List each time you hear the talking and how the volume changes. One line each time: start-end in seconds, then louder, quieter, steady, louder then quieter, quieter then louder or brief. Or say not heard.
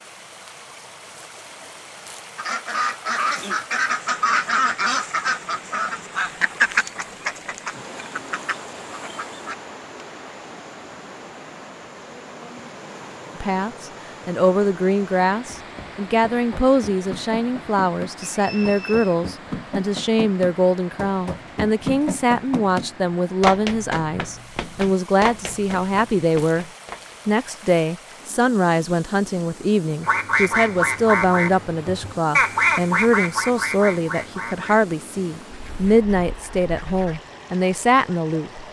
13.4-26.6 steady
27.2-38.6 steady.